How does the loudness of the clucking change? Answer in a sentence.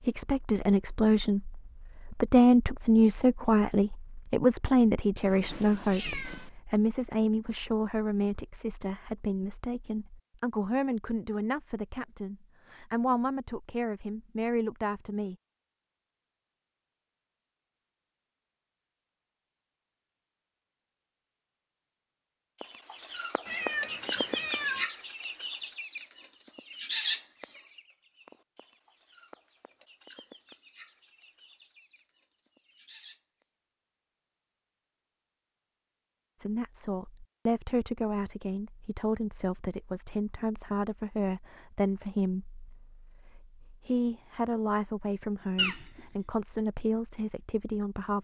The loudness of the clucking goes down.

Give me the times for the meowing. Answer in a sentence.
The meowing can be heard from 5.2 to 6.5 s, from 23.4 to 24.9 s and from 45.5 to 46.0 s.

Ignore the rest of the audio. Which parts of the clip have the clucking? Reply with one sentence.
You can hear the clucking from 22.6 to 33.5 s.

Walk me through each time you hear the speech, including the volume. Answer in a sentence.
You can hear the speech from 0.0 to 15.3 s, getting quieter; and from 36.4 to 48.2 s, at a steady volume.